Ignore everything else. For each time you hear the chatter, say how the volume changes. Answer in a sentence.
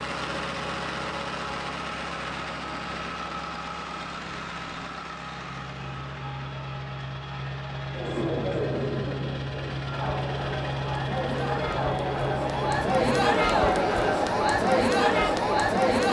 You can hear the chatter from 7.9 to 16.0 s, getting louder.